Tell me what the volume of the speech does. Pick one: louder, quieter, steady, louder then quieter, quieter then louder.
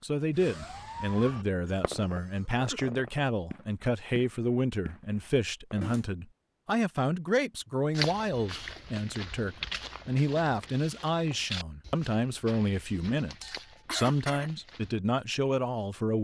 steady.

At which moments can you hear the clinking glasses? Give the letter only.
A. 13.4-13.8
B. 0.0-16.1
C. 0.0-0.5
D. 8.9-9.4
A.